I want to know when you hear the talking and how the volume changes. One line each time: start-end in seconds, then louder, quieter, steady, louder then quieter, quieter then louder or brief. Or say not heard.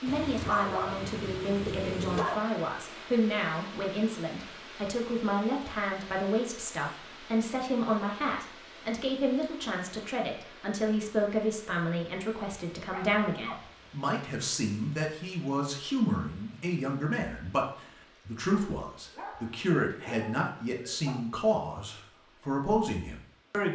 0.0-23.6 steady.